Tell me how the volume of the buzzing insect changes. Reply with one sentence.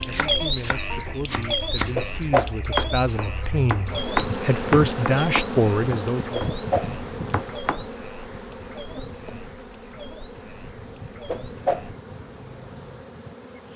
The volume of the buzzing insect goes up, then down.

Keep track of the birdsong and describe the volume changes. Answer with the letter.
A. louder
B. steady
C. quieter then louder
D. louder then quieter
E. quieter
E.